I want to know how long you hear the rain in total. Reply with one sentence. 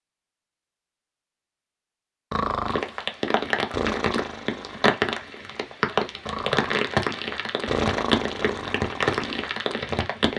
The rain can be heard for 8 seconds in total.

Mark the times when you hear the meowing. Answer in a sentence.
You can't hear the meowing here.